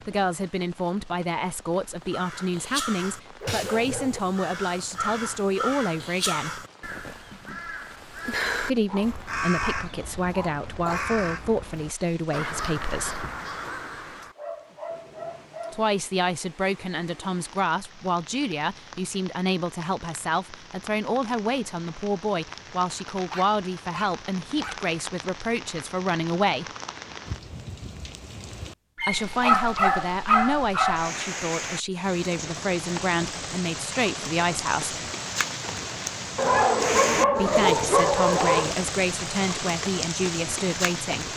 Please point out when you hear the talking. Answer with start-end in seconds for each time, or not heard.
0.1-6.7, 8.6-13.2, 15.7-26.6, 29.0-35.0, 37.4-41.3.